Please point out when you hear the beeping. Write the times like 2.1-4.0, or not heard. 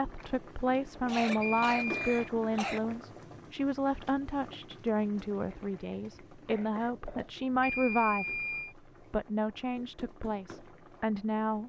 1.4-2.3, 7.6-8.8.